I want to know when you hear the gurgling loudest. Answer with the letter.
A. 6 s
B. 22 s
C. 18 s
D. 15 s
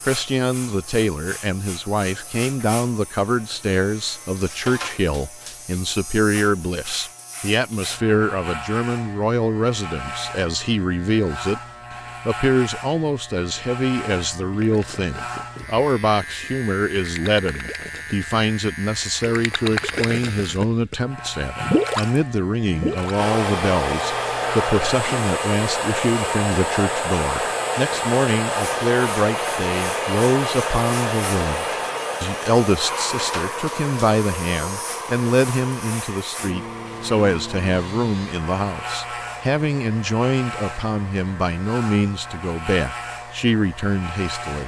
B.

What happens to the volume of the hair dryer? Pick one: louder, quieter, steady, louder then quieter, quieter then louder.
quieter.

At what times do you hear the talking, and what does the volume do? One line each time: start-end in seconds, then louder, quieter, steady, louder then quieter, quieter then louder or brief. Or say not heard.
0.1-11.6 steady
12.2-44.6 steady.